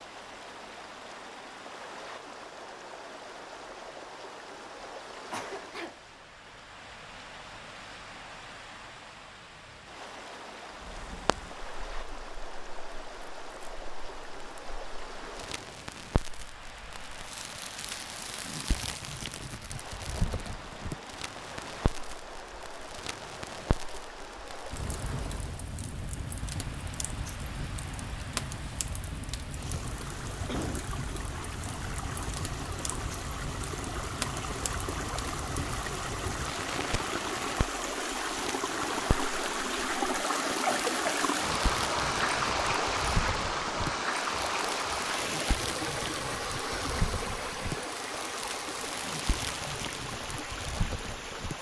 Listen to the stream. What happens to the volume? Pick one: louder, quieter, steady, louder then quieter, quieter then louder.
louder.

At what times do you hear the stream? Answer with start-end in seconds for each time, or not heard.
0.0-51.5.